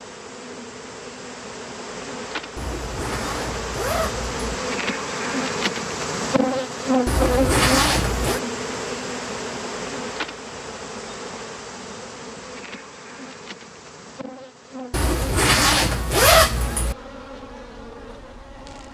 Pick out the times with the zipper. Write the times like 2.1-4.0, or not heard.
2.5-4.5, 7.0-8.4, 14.9-16.9.